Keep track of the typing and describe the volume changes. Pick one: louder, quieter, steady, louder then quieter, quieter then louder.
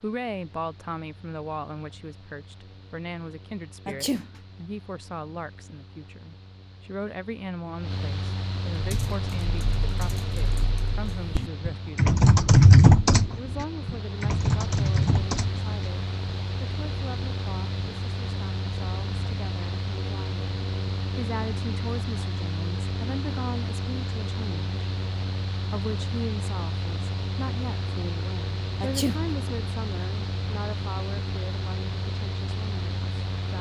louder then quieter.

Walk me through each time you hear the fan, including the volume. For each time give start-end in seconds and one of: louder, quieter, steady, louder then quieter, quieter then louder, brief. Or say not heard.
0.0-33.5 louder.